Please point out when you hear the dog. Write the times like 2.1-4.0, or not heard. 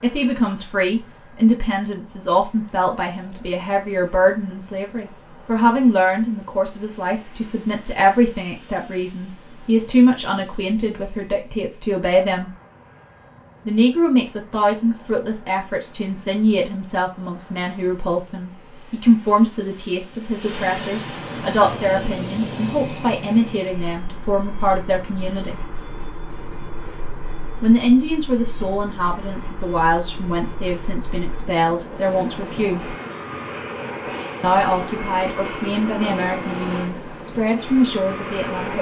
not heard.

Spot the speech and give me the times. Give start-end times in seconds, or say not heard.
0.0-12.5, 13.7-25.6, 27.6-33.0, 34.4-38.7.